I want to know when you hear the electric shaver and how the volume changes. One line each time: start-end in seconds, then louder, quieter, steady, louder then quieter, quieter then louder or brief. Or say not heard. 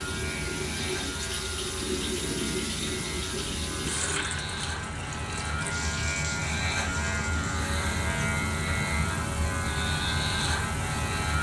0.0-11.3 louder.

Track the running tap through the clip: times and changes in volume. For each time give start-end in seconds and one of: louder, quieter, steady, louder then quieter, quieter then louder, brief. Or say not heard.
0.0-11.2 quieter.